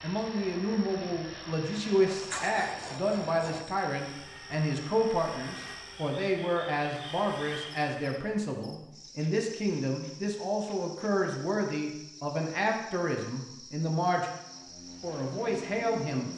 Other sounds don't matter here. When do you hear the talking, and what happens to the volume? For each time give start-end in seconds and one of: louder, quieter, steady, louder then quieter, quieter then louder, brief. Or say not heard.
0.0-14.3 steady
15.0-16.3 brief.